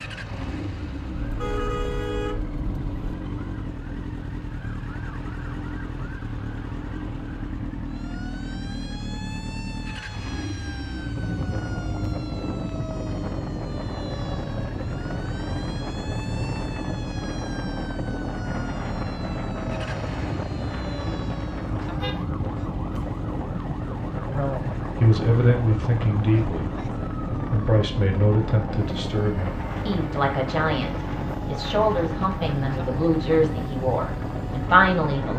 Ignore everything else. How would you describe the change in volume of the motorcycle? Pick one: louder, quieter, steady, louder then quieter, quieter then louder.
steady.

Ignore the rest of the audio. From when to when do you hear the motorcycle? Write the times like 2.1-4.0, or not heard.
0.0-35.3.